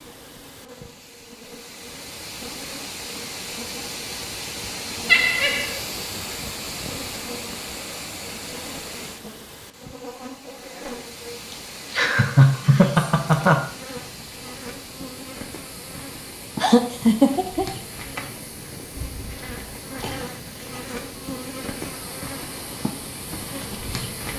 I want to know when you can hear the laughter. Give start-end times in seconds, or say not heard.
5.0-5.8, 11.9-13.6, 16.6-17.6.